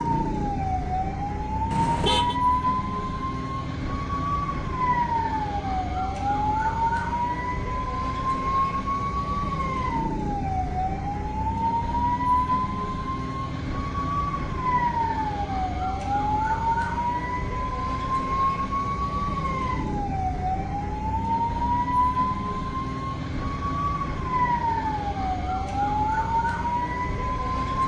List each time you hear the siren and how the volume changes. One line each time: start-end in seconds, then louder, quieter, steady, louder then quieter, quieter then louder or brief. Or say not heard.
0.0-27.8 steady.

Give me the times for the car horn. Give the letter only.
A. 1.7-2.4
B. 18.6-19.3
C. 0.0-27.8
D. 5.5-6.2
A.